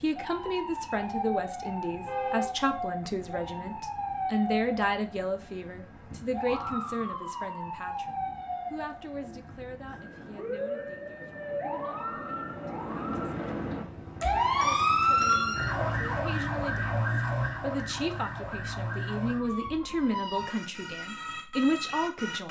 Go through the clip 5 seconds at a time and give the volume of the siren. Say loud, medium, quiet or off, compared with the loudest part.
medium, medium, loud, loud, medium.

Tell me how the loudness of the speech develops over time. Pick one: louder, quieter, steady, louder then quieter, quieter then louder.
quieter then louder.